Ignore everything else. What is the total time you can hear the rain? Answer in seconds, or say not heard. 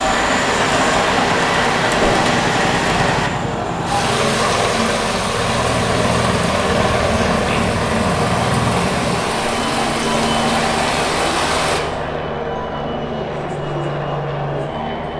12 s.